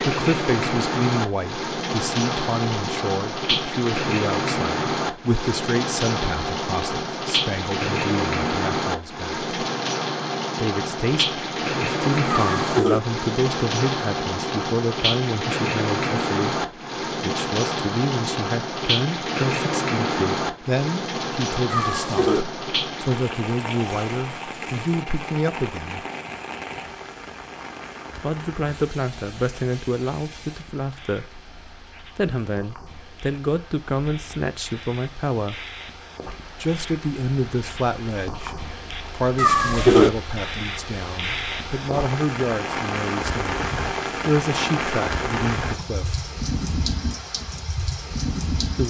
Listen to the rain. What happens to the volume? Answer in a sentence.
The volume of the rain goes down, then up.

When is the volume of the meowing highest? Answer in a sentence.
The volume of the meowing peaks at 40 seconds.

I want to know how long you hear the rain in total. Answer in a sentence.
You can hear the rain for 49 seconds altogether.